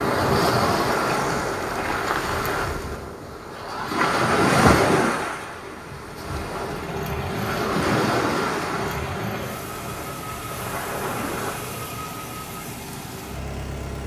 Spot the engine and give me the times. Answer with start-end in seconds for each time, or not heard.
6.4-14.0.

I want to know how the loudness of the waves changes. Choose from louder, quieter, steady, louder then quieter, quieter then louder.
quieter.